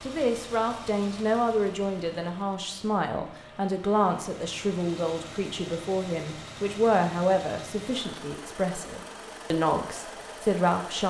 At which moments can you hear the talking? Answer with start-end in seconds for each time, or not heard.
0.0-11.0.